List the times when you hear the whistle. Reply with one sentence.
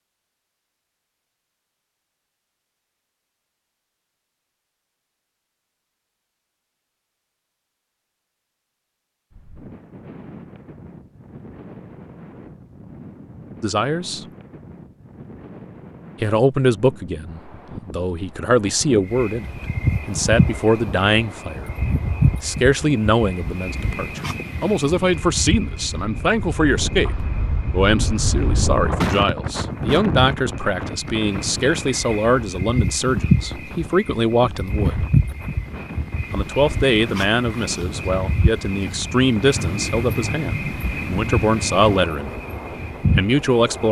The whistle can't be heard in this clip.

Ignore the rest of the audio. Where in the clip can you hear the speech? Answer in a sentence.
The speech can be heard from 13.6 to 14.2 s, from 16.2 to 19.4 s, from 20.1 to 21.7 s, from 22.4 to 35.0 s, from 36.3 to 42.4 s and from 43.1 to 43.8 s.